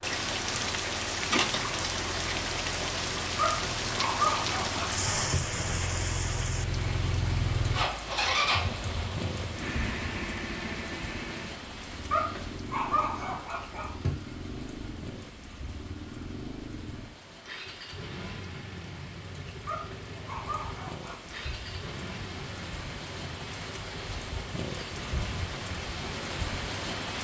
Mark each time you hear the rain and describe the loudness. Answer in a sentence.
The rain can be heard from 0.0 to 27.2 s, getting quieter then louder.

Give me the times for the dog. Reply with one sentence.
The dog can be heard from 3.4 to 5.4 s, from 12.1 to 14.1 s and from 19.6 to 21.2 s.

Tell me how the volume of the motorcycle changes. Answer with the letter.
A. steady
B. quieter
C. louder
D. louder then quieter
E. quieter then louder
D.